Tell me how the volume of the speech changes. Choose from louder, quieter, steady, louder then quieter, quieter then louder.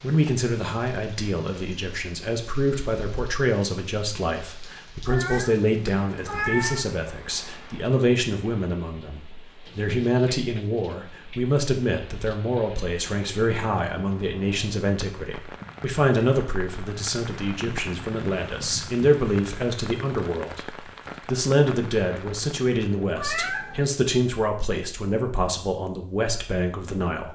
steady.